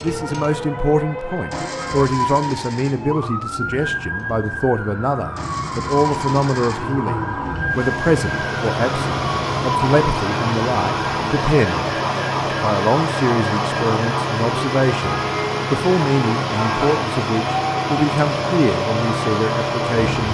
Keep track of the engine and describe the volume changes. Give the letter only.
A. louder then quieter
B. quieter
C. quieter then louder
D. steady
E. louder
E.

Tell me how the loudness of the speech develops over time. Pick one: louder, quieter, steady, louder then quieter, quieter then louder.
steady.